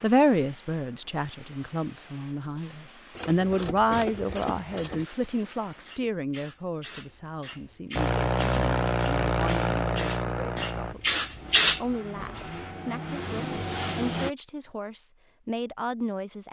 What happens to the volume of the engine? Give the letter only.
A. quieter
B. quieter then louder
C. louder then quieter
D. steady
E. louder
B.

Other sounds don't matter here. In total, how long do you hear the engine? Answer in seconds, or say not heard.
6 s.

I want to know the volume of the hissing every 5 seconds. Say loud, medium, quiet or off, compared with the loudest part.
quiet, quiet, loud, off.